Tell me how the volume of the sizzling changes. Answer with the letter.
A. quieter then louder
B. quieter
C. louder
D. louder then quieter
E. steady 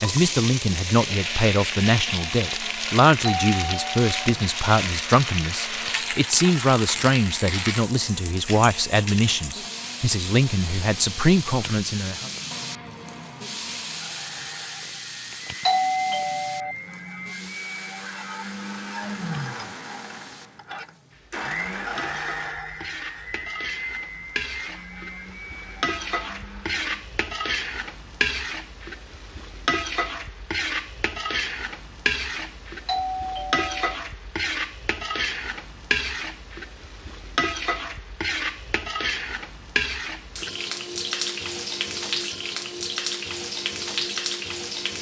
A.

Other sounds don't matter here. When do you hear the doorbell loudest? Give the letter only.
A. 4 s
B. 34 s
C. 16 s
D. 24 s
C.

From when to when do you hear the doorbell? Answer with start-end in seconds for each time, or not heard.
3.2-4.1, 15.7-16.8, 32.9-33.9.